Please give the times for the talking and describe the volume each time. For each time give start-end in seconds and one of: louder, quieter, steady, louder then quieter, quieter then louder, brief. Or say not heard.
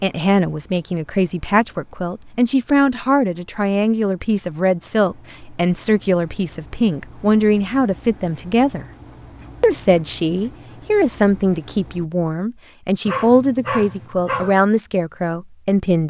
0.0-8.8 steady
9.6-16.0 steady.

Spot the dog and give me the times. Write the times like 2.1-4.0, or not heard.
13.1-14.6.